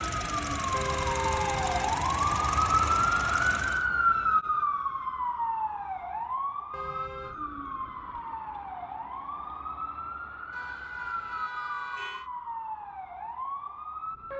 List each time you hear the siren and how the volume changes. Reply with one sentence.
The siren can be heard from 0.0 to 14.3 s, getting quieter.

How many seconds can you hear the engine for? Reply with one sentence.
You can hear the engine for 4 seconds altogether.